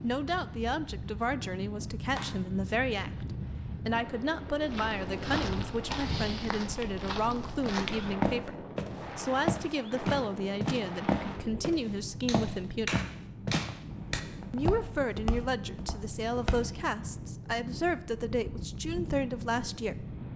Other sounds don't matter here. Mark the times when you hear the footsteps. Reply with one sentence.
The footsteps can be heard from 4.6 to 16.6 s.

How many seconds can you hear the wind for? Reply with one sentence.
You can hear the wind for 20 seconds altogether.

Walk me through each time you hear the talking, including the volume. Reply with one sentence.
The talking can be heard from 0.0 to 12.9 s, at a steady volume; and from 14.5 to 20.1 s, at a steady volume.